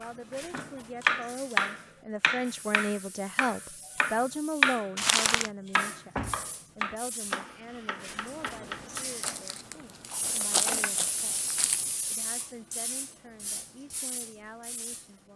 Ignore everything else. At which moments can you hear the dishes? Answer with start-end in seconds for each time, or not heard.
not heard.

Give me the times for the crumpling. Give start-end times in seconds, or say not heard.
5.0-5.5, 9.2-11.9.